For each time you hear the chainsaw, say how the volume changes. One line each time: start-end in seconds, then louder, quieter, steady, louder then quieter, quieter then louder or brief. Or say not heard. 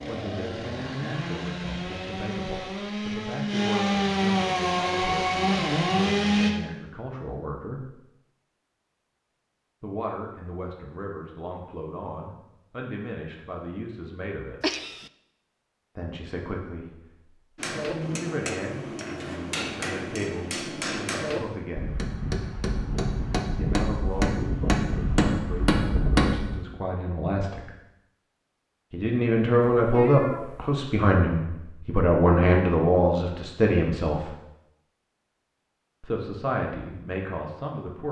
0.0-6.5 louder.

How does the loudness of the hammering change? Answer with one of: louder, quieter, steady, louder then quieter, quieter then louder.
louder.